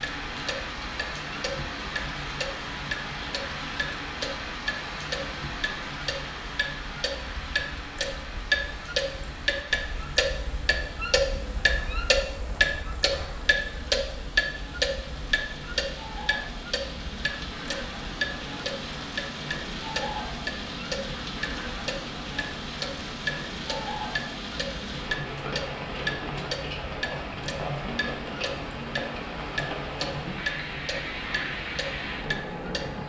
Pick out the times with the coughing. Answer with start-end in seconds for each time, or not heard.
not heard.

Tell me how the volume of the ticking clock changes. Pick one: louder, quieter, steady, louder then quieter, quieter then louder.
louder then quieter.